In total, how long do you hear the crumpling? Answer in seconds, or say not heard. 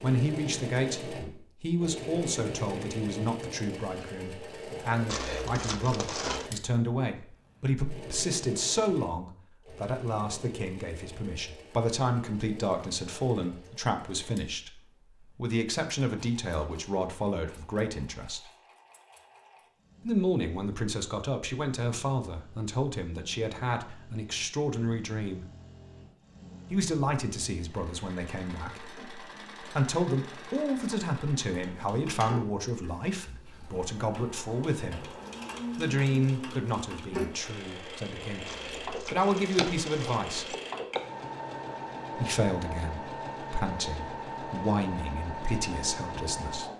3 s.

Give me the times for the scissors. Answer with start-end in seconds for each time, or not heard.
38.7-41.0.